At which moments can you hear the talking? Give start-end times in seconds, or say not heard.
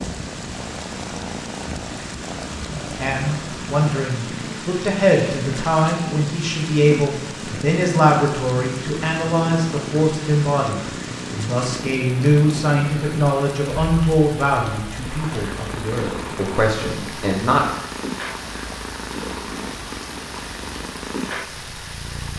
2.9-17.6.